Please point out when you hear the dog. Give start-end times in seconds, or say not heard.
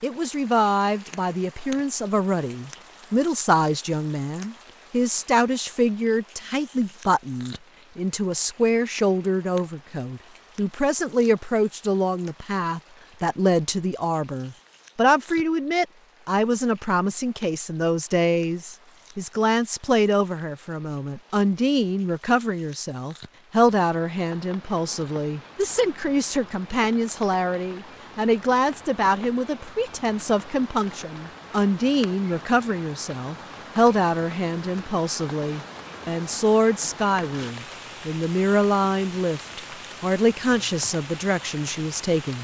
not heard.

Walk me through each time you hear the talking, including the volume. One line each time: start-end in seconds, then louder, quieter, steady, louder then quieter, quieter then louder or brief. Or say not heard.
0.0-42.3 steady.